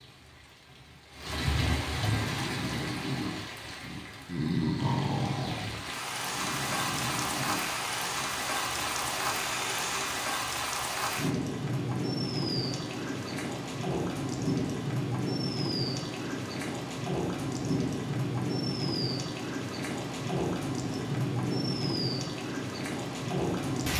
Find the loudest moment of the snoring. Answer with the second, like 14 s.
5 s.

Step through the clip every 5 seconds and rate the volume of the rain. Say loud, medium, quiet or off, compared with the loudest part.
medium, loud, loud, loud, loud.